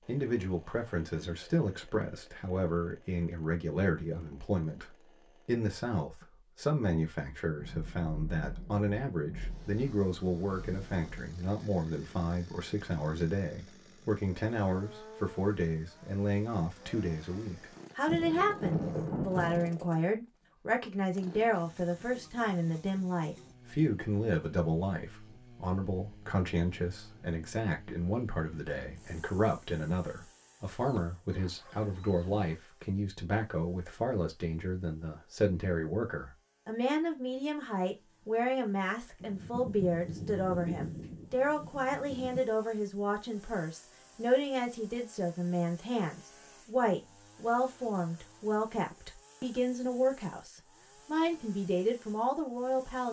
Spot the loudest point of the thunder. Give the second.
19 s.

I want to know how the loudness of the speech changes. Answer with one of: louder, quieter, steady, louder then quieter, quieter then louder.
steady.